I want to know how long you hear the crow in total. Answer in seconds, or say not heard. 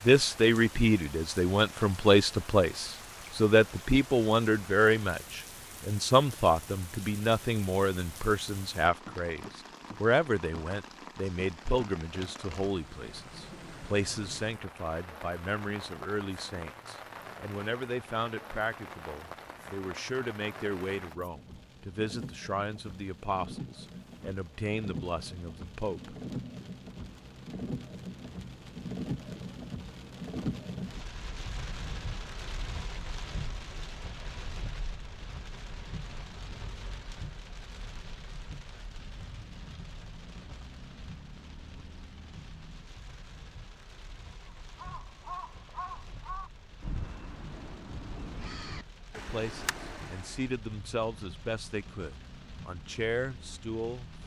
6 s.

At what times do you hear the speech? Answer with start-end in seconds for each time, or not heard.
0.1-26.1, 49.1-54.1.